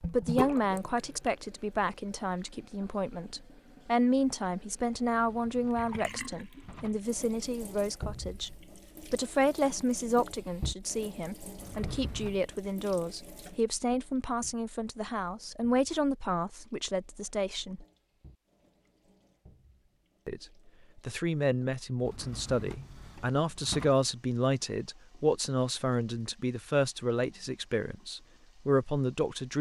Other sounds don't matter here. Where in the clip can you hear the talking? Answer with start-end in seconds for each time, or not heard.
0.1-17.9, 20.2-29.5.